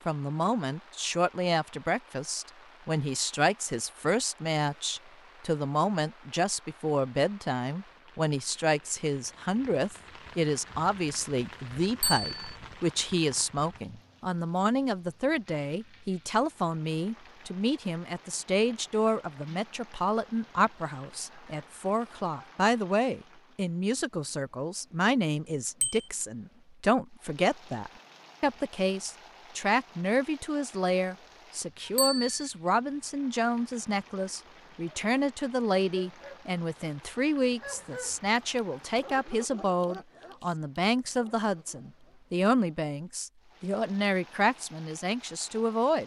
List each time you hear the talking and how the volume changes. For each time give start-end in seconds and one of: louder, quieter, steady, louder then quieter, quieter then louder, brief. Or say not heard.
0.1-46.0 steady.